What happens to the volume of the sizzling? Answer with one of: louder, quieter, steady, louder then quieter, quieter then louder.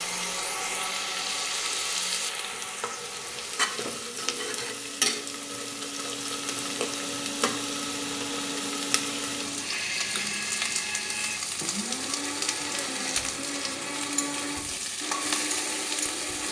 steady.